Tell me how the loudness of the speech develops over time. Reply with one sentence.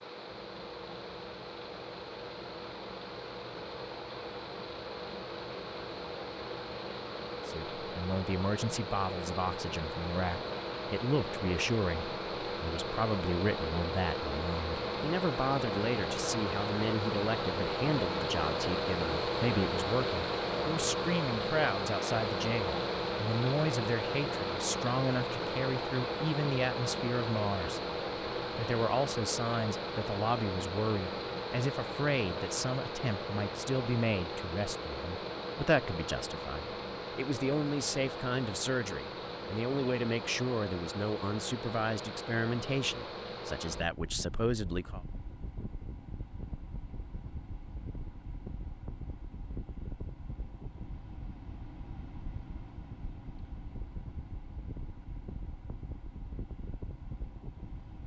The loudness of the speech stays about the same.